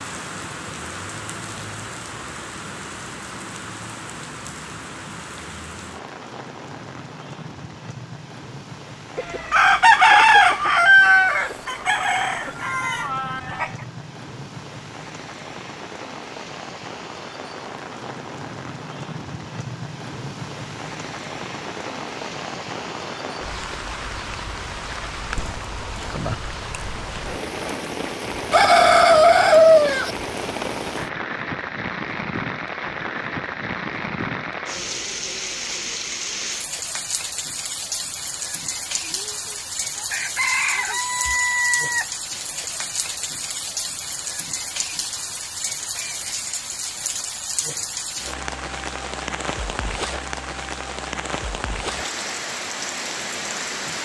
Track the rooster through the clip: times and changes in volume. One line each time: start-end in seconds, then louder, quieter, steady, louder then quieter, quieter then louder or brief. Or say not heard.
9.2-13.7 quieter
28.5-30.1 brief
39.1-42.0 brief.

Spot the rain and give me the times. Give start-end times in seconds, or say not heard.
0.0-53.9.